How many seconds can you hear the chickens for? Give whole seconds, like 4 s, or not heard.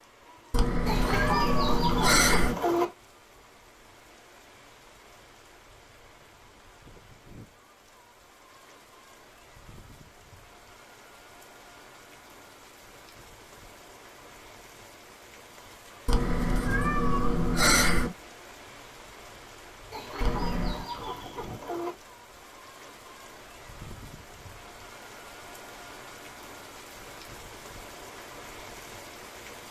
4 s.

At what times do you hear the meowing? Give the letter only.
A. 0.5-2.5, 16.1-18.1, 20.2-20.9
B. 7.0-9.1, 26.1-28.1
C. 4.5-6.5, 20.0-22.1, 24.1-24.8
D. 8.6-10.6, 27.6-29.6
A.